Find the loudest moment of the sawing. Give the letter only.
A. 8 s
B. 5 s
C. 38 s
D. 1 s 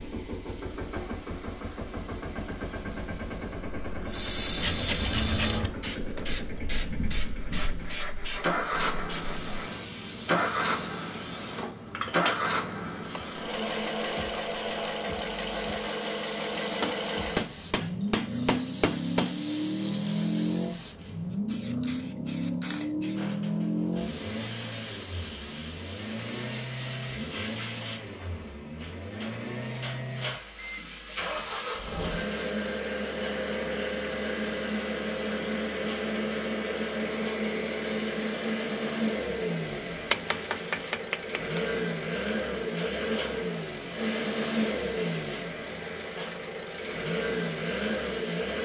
B.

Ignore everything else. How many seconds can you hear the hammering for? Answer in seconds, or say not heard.
4 s.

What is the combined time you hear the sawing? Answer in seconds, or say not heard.
5 s.